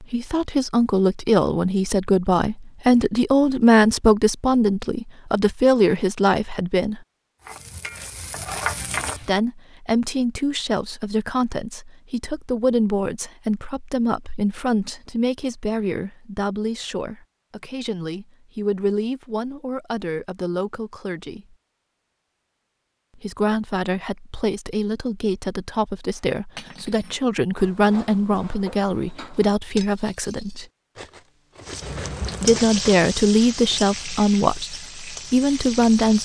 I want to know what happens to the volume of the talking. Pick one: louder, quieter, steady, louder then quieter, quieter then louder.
quieter then louder.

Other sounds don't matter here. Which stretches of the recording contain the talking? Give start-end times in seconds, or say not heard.
0.1-7.0, 9.2-21.4, 23.1-30.6, 32.4-36.1.